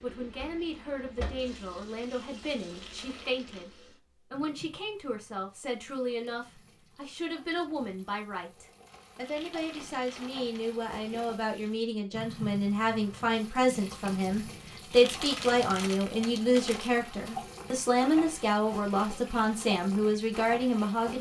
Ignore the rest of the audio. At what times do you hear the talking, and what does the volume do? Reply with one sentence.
The talking can be heard from 0.0 to 21.1 s, getting louder.